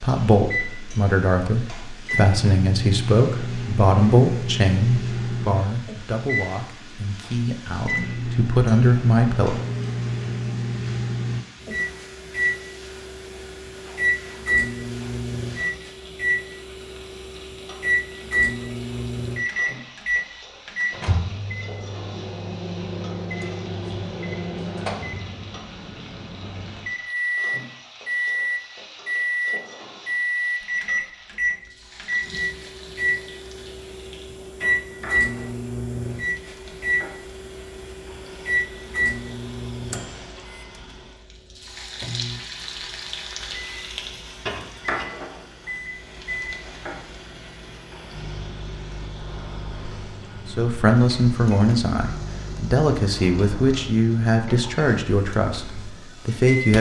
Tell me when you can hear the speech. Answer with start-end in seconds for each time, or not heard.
0.0-9.6, 50.5-56.7.